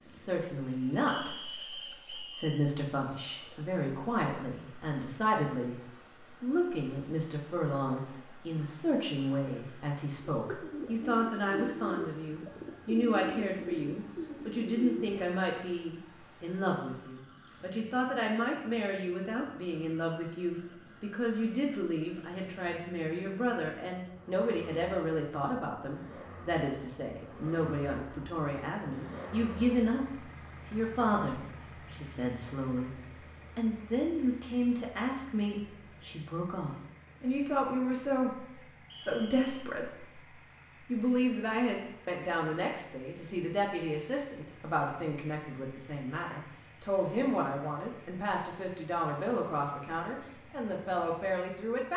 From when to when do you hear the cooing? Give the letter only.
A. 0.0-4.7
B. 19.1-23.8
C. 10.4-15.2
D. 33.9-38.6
C.